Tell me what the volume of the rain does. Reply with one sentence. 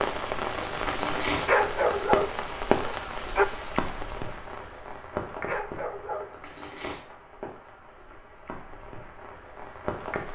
The loudness of the rain goes down.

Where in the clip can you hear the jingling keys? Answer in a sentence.
You can't hear the jingling keys here.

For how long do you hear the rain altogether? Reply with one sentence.
You can hear the rain for 10 seconds altogether.